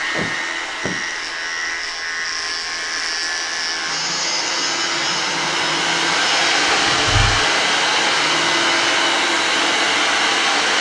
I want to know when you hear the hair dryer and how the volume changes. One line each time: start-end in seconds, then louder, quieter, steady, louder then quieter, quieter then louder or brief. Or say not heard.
0.0-10.7 louder.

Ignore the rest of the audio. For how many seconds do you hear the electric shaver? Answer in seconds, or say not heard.
9 s.